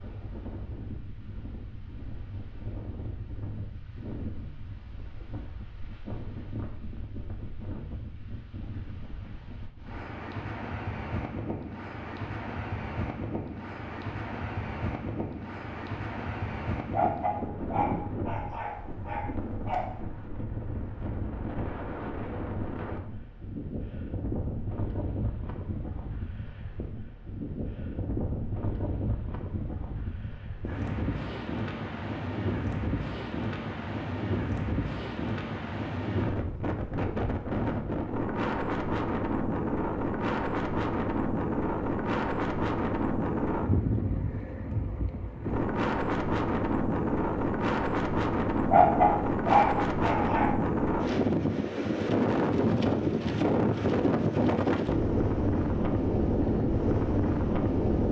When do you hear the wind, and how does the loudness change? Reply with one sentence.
You can hear the wind from 0.0 to 58.0 s, getting louder.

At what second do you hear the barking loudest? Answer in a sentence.
The loudest moment of the barking is at 49 seconds.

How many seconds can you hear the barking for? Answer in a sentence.
You can hear the barking for 5 seconds altogether.